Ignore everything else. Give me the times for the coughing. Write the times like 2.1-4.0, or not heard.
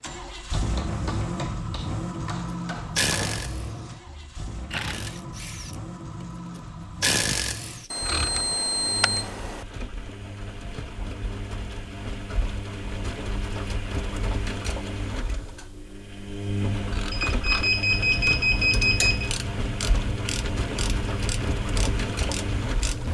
not heard.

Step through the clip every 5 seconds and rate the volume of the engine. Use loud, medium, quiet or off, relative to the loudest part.
loud, medium, loud, loud, loud.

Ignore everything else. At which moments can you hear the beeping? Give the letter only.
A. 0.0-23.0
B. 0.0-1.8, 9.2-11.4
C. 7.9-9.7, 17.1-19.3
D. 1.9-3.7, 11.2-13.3
C.